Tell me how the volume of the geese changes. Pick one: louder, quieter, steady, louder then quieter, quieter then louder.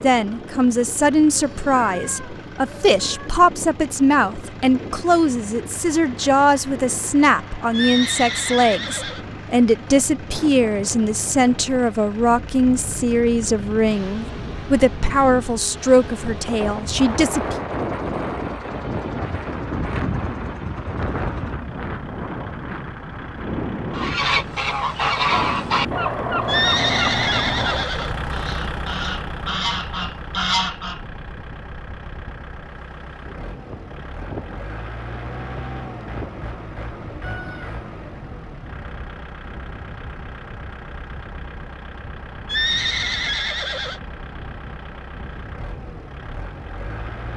quieter then louder.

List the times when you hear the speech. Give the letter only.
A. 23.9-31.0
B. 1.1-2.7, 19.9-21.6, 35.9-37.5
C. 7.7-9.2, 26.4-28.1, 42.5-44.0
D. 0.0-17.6
D.